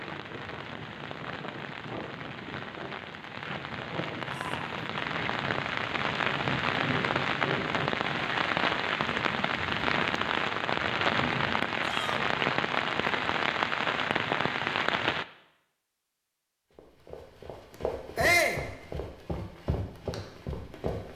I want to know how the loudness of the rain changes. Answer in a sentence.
The loudness of the rain goes up.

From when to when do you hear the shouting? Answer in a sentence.
You can hear the shouting from 4.2 to 4.7 s, from 11.8 to 12.2 s and from 18.1 to 18.6 s.